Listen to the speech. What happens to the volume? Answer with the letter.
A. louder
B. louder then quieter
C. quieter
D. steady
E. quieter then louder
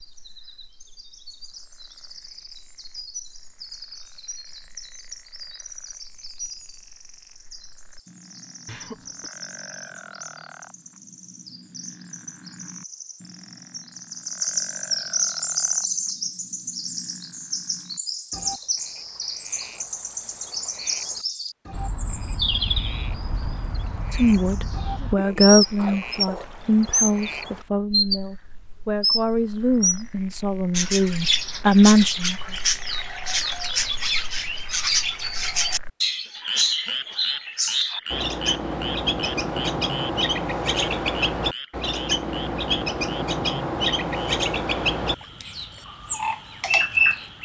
E.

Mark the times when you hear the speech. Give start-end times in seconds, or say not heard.
24.1-32.4.